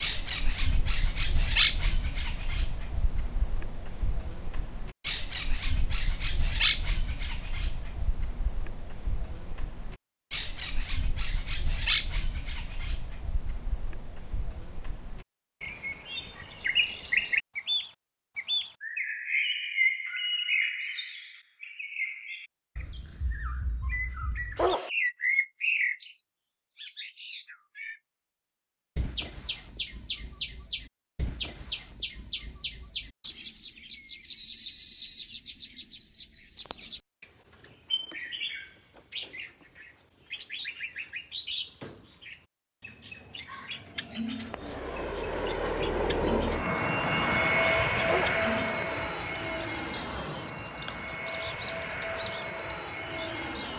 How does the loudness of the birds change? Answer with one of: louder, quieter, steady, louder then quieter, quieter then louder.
quieter.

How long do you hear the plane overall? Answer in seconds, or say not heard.
9 s.